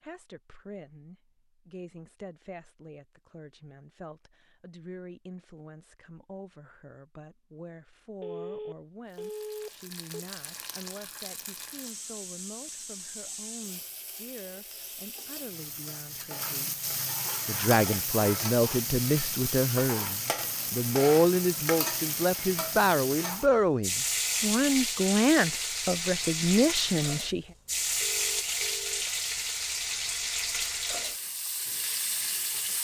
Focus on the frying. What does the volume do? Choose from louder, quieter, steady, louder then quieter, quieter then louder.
louder.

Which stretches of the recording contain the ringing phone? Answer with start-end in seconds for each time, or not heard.
8.2-10.2, 27.9-29.1.